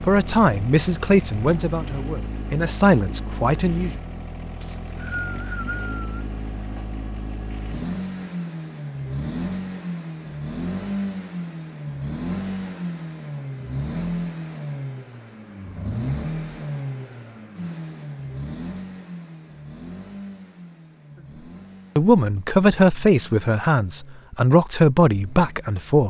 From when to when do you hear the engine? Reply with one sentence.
You can hear the engine from 0.0 to 26.0 s.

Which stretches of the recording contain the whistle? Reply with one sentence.
You can hear the whistle from 4.6 to 6.2 s.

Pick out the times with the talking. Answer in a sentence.
You can hear the talking from 0.0 to 3.9 s and from 21.9 to 26.0 s.